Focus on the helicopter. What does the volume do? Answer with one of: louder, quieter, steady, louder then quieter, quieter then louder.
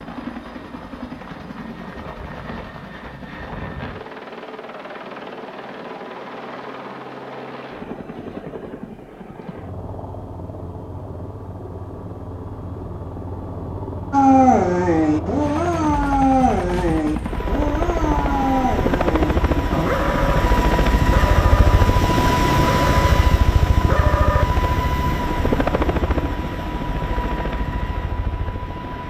louder.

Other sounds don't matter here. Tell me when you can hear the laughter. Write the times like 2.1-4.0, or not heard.
not heard.